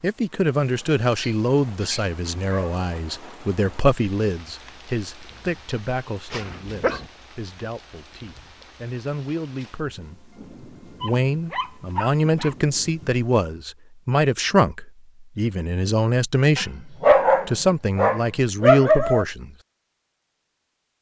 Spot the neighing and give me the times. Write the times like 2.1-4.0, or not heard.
not heard.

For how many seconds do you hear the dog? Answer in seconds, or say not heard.
7 s.